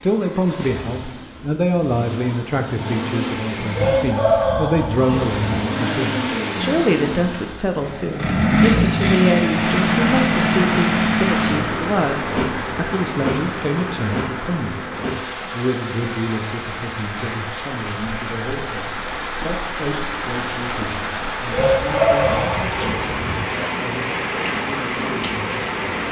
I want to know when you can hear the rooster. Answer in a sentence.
The rooster can be heard from 3.7 to 5.3 s and from 21.5 to 23.4 s.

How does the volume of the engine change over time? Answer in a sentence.
The loudness of the engine goes up, then down.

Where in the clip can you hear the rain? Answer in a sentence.
The rain can be heard from 9.5 to 26.0 s.